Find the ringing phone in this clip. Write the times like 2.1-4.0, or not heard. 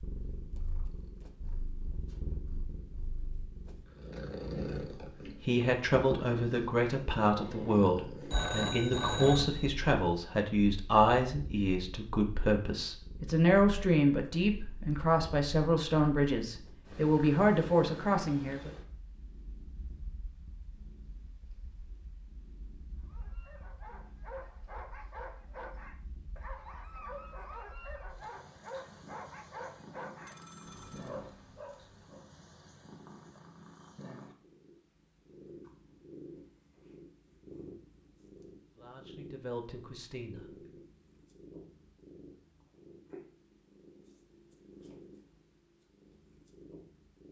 8.3-9.8, 30.2-31.1.